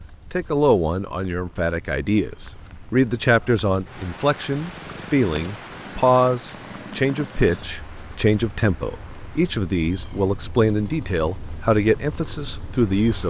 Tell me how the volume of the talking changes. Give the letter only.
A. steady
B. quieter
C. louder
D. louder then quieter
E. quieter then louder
A.